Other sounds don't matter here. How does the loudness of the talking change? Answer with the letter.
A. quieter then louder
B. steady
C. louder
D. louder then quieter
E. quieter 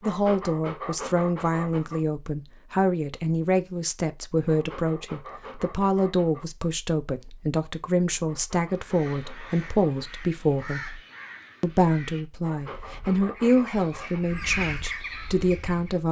B.